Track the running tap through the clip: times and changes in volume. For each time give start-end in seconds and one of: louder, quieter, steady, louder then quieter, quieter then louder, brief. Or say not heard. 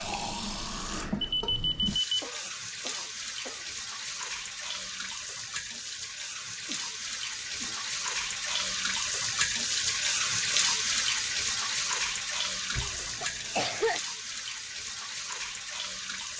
0.0-16.3 louder then quieter.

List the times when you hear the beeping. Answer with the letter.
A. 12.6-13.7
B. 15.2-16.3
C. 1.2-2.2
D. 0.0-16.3
C.